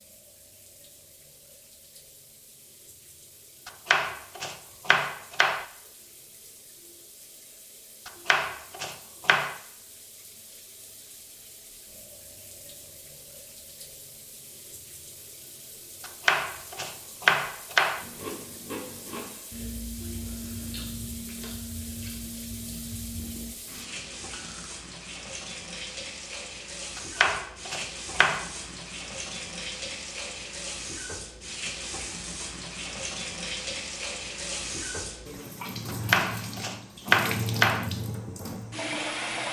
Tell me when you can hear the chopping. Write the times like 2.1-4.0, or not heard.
3.6-5.7, 8.1-9.6, 16.0-18.1, 26.9-28.5, 35.9-37.9.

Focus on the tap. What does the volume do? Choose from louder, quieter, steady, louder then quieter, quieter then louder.
louder.